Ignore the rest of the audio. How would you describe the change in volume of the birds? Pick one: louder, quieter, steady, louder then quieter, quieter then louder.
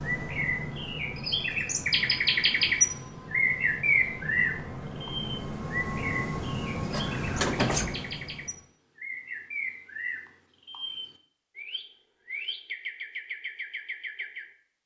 quieter.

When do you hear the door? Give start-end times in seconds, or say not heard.
6.9-8.1.